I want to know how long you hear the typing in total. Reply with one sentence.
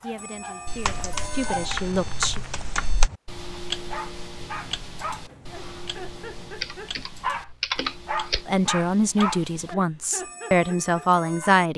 The typing can be heard for 4 seconds in total.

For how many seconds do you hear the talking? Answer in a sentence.
The talking can be heard for 6 seconds in total.